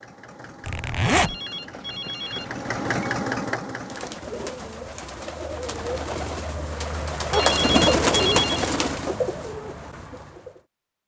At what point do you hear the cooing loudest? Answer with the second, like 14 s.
8 s.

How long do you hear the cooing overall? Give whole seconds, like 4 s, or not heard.
7 s.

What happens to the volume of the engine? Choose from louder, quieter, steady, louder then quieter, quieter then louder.
louder.